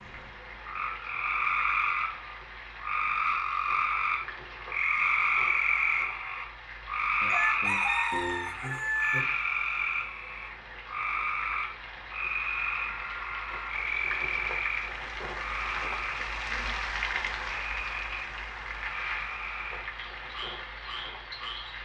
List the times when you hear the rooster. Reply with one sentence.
The rooster can be heard from 7.2 to 9.2 s.